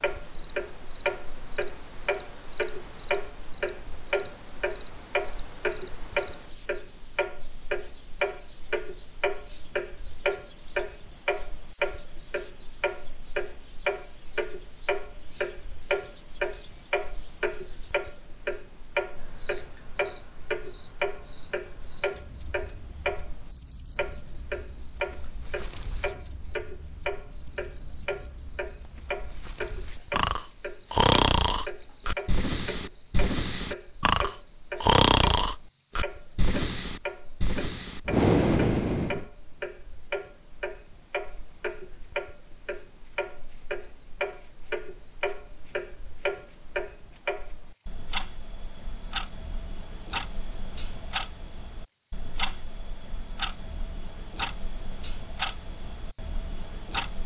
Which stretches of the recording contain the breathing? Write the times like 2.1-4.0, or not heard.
30.1-39.2.